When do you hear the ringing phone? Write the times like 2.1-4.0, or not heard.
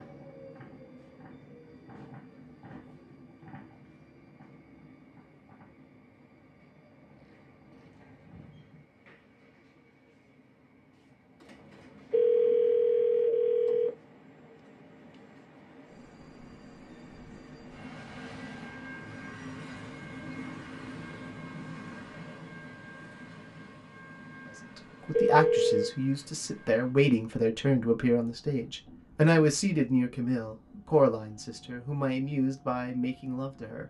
12.1-13.9, 25.1-25.9.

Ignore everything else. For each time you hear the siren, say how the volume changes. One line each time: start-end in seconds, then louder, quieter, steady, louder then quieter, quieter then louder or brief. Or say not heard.
not heard.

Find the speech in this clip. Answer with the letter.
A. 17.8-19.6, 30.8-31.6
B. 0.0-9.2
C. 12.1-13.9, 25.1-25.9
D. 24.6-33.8
D.